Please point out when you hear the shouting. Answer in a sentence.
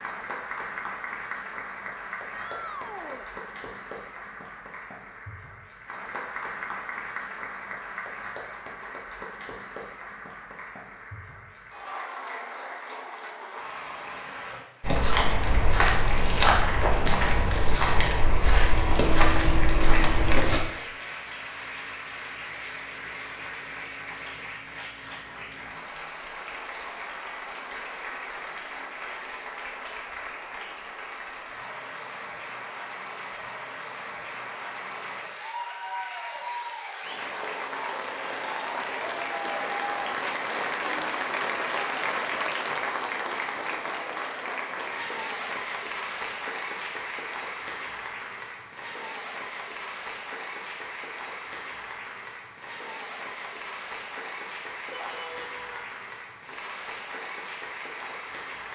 You can hear the shouting from 2.3 to 3.3 s and from 54.9 to 55.6 s.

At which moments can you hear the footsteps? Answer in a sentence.
The footsteps can be heard from 14.8 to 20.6 s.